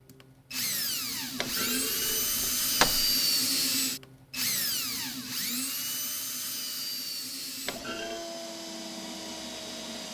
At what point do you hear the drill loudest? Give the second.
3 s.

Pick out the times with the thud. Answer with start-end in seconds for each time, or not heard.
1.4-3.1, 7.7-8.2.